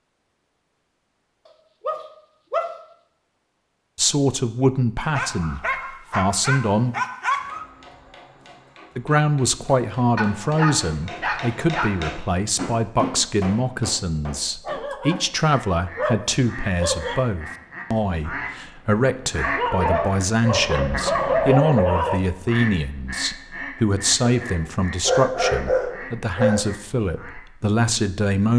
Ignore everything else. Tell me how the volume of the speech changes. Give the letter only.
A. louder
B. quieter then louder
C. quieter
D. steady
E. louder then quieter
D.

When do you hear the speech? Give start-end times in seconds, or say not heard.
4.0-7.0, 8.9-28.5.